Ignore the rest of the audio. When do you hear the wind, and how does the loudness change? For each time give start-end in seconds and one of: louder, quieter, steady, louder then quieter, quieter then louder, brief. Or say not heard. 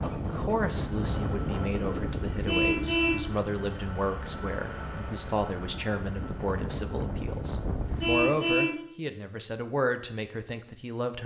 0.0-8.2 quieter then louder.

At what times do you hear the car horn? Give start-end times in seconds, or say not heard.
2.5-3.2, 8.0-8.8.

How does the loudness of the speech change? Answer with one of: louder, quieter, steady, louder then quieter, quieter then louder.
steady.